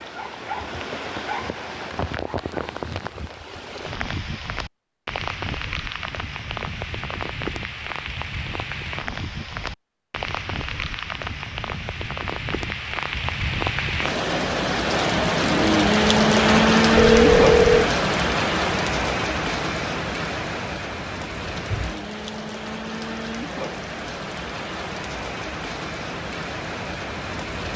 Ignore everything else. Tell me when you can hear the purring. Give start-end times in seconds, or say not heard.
not heard.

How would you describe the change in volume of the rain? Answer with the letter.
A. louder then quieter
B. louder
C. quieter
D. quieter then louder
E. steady
A.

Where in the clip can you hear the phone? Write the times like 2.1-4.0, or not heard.
16.9-17.9.